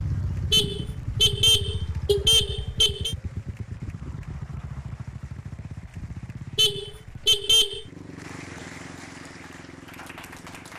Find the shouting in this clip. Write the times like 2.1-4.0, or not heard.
not heard.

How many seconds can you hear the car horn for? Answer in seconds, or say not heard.
4 s.